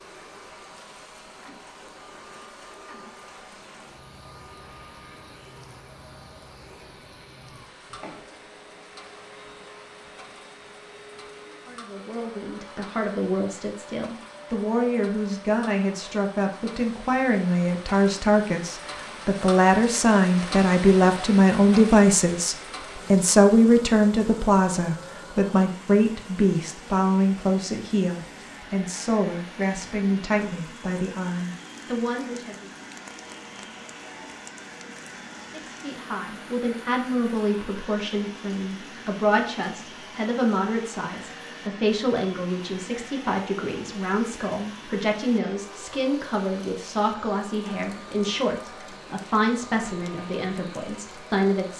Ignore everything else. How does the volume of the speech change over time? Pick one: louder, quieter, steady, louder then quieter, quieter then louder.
louder then quieter.